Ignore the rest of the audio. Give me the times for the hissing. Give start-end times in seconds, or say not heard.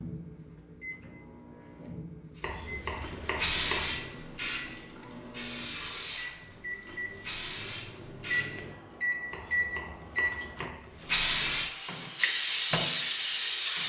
2.4-8.5, 11.0-13.8.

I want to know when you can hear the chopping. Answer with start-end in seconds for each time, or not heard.
2.4-4.0, 9.3-11.0.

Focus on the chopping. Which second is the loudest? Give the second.
4 s.